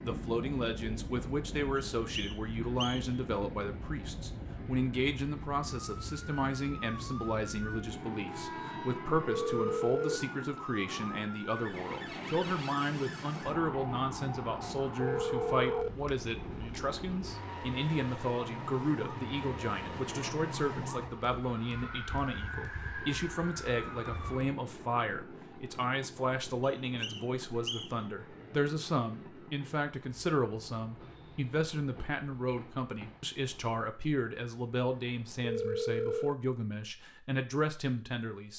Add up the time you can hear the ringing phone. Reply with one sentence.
You can hear the ringing phone for 3 seconds altogether.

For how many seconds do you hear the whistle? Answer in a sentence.
The whistle can be heard for 3 seconds in total.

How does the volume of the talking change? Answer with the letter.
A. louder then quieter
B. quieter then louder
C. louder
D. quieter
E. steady
E.